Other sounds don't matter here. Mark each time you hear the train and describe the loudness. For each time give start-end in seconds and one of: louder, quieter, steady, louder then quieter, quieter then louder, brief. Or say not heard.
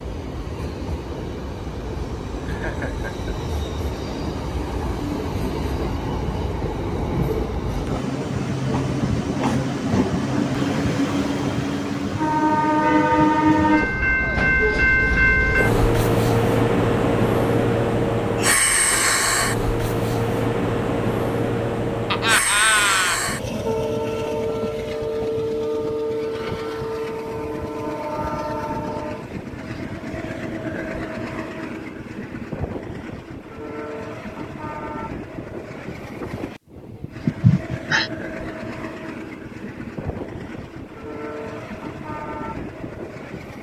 0.0-43.5 louder then quieter.